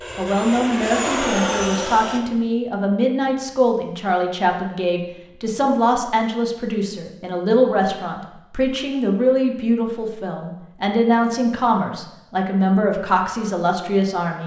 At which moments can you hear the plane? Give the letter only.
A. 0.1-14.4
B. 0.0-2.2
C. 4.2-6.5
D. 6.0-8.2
B.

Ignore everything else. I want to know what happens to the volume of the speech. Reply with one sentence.
The loudness of the speech stays about the same.